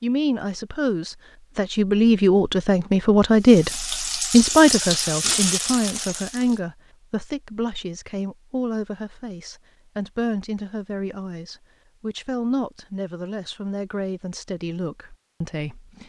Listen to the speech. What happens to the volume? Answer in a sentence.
The loudness of the speech goes down.